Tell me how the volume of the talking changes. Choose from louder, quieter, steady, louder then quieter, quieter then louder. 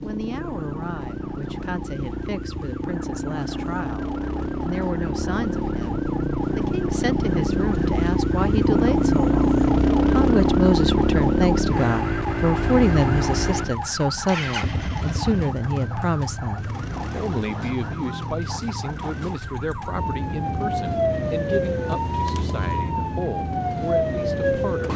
louder then quieter.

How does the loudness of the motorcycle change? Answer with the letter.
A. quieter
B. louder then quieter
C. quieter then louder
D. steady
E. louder
B.